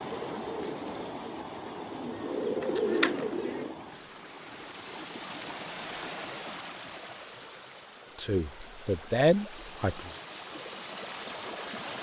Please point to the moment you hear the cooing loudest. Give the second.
3 s.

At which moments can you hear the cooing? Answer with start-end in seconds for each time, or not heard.
0.0-3.8.